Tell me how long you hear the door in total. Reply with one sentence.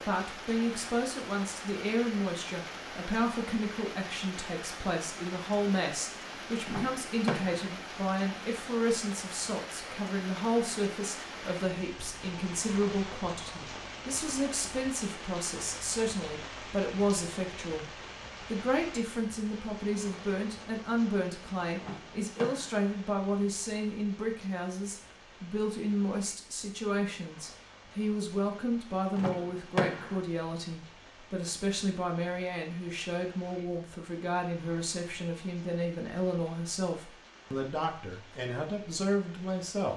The door can be heard for 3 seconds in total.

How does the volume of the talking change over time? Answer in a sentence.
The loudness of the talking stays about the same.